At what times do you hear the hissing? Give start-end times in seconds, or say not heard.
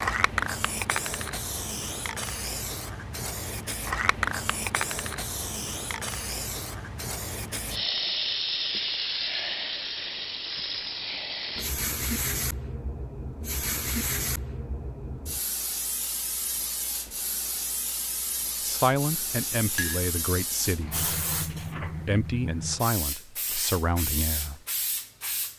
0.0-25.5.